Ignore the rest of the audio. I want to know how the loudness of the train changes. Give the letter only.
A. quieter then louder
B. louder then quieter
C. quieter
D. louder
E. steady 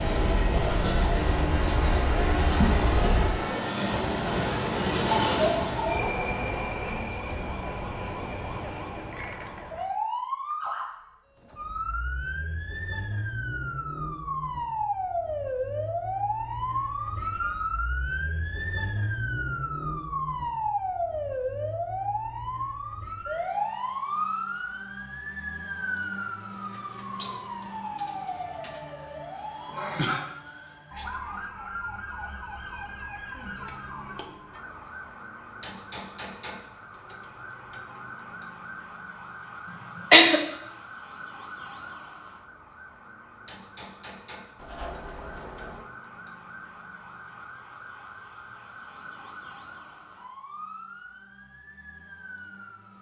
C.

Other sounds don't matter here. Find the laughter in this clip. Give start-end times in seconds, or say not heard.
2.6-3.1, 29.6-30.2, 39.6-40.4.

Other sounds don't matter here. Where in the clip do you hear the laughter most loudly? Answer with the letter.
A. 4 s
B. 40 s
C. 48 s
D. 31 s
B.